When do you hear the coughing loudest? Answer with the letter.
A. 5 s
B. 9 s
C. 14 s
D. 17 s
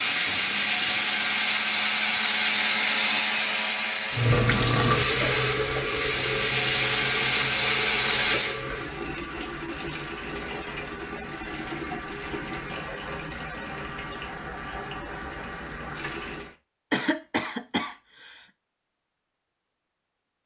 D.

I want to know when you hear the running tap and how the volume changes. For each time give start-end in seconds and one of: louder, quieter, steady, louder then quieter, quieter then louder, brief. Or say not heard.
4.1-16.6 quieter.